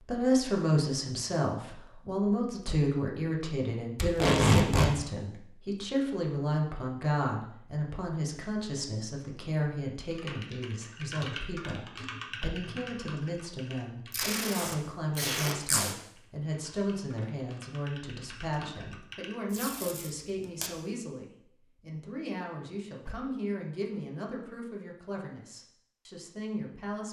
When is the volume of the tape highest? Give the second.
4 s.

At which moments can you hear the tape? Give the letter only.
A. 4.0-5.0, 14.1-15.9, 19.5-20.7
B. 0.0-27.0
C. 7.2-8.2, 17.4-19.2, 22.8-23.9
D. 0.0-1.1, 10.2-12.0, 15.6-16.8
A.